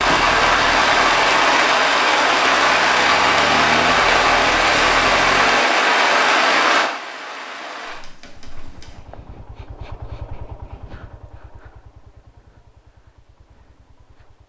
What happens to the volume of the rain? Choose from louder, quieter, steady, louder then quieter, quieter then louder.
quieter.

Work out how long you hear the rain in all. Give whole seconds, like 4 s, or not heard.
9 s.